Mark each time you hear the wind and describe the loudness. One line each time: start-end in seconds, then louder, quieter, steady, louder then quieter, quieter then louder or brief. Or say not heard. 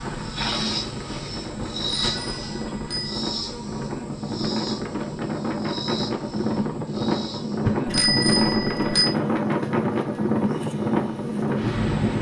0.0-12.1 louder.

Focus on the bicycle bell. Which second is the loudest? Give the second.
8 s.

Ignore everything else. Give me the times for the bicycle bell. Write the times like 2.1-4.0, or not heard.
1.6-3.2, 7.7-9.2.